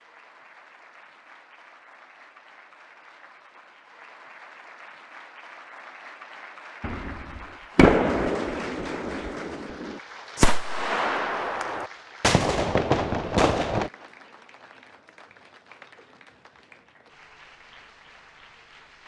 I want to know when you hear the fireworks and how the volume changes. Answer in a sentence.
You can hear the fireworks from 6.8 to 13.9 s, getting quieter then louder.